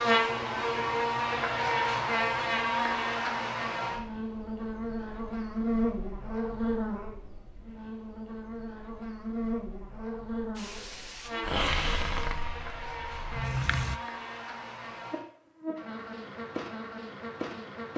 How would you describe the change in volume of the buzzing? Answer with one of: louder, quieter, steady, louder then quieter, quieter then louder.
quieter.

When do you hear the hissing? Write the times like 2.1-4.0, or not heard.
10.6-14.0.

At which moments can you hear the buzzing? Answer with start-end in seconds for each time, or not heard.
0.0-17.9.